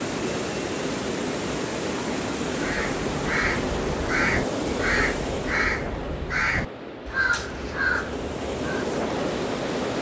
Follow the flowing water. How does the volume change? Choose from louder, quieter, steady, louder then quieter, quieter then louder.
quieter then louder.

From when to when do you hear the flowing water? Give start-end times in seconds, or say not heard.
0.0-9.9.